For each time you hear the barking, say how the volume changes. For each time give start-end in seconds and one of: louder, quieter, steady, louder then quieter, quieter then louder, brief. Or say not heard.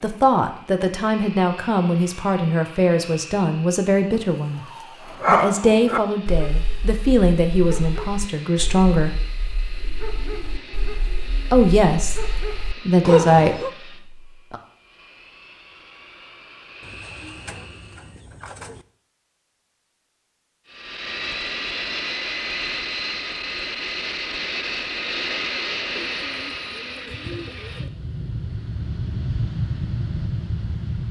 5.1-13.7 quieter then louder.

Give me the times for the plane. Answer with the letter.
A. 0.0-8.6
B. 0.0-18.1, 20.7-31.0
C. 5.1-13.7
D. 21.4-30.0
B.